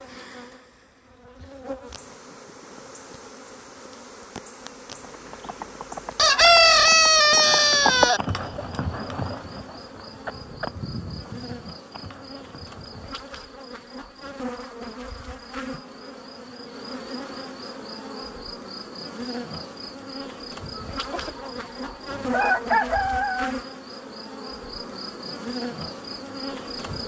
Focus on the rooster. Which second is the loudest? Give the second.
7 s.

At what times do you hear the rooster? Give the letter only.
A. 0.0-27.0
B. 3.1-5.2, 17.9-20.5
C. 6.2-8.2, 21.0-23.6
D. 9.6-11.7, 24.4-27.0
C.